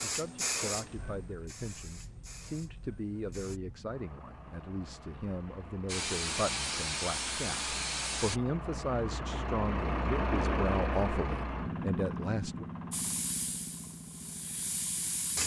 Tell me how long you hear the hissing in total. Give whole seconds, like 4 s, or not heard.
9 s.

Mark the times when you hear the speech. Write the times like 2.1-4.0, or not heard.
0.0-12.7.